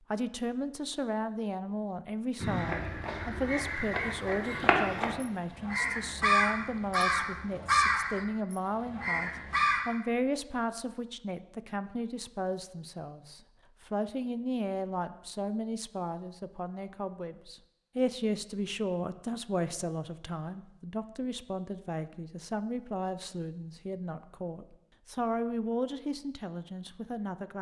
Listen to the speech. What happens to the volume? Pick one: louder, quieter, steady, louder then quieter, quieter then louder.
steady.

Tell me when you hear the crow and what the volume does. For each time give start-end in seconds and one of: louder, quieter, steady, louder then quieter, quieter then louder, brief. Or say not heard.
2.4-9.8 louder then quieter.